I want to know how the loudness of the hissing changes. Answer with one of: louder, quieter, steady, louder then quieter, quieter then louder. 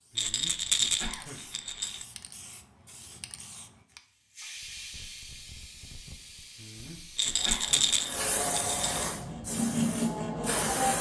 louder.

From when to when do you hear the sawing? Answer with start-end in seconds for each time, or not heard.
9.2-10.9.